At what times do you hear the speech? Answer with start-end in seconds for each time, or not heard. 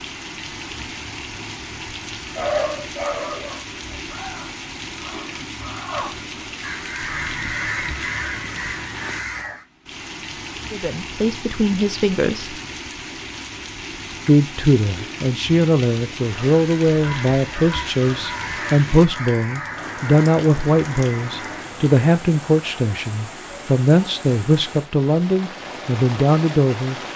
10.7-12.6, 14.2-26.9.